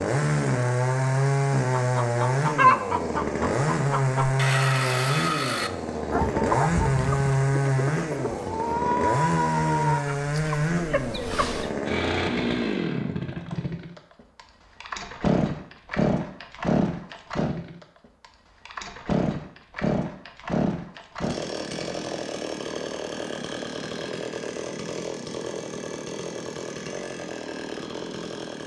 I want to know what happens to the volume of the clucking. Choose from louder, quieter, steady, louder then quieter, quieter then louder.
quieter.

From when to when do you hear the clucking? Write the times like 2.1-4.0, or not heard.
1.8-11.7.